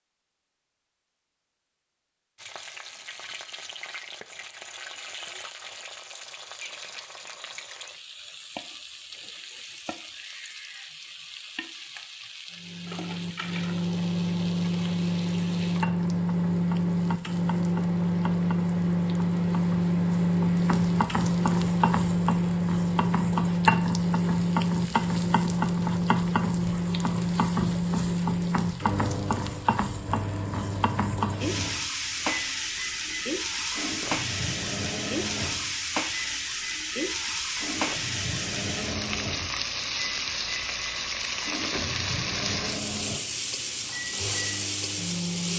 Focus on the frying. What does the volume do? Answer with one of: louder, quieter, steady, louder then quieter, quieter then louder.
louder.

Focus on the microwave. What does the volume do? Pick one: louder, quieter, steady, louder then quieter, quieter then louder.
quieter.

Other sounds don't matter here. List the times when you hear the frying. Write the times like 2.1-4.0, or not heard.
2.4-45.5.